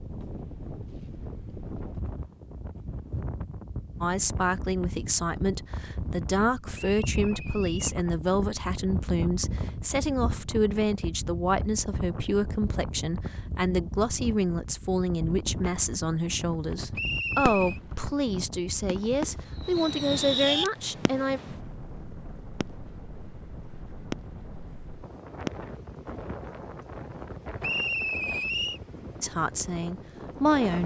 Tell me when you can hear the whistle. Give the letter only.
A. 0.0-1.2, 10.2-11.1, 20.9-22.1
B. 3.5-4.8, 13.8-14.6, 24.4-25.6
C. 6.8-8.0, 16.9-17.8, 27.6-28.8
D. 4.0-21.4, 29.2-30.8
C.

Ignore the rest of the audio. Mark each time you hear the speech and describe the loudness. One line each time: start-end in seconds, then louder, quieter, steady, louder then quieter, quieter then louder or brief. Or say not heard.
4.0-21.4 steady
29.2-30.8 brief.